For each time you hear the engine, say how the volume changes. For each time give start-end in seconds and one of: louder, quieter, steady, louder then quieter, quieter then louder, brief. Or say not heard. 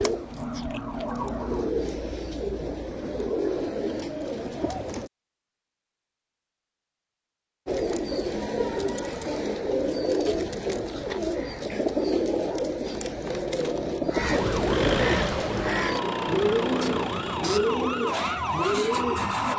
14.3-19.5 quieter.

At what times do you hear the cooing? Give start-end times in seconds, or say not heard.
0.0-5.1, 7.7-19.5.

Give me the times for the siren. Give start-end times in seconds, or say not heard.
0.0-1.7, 14.2-19.5.